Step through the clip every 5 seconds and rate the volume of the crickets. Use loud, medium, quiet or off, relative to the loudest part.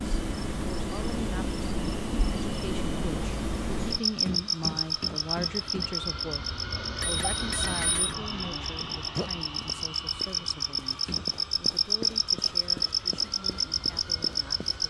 loud, medium, loud.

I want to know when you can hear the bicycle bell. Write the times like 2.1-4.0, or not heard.
7.0-8.2.